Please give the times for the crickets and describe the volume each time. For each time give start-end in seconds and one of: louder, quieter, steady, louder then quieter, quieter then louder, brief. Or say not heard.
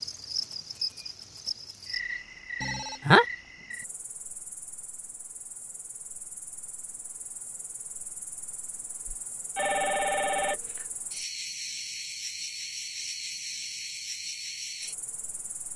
0.0-15.7 quieter then louder.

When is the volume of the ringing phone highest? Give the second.
3 s.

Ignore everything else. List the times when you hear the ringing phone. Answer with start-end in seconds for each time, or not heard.
2.6-3.2, 9.1-10.8.